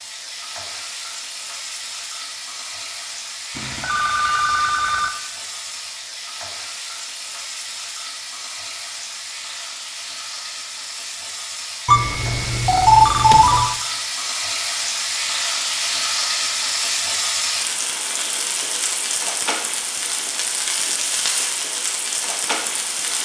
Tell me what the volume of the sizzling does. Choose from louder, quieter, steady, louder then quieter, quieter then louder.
louder.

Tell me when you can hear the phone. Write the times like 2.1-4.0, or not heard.
3.5-5.2, 11.8-13.8.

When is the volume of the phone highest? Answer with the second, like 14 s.
13 s.